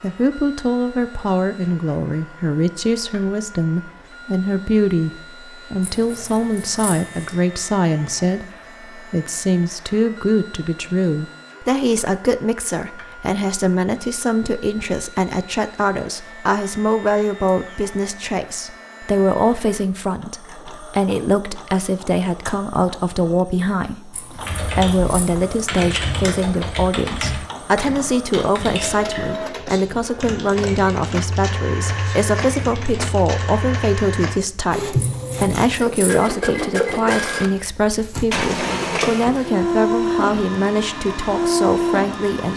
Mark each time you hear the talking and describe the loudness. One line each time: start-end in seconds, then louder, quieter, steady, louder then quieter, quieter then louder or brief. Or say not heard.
0.0-42.5 steady.